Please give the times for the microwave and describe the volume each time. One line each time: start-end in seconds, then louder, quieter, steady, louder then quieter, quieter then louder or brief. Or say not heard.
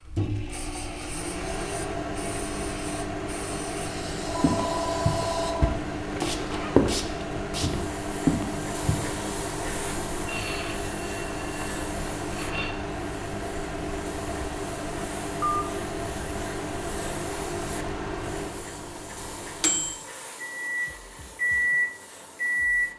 0.0-22.9 steady.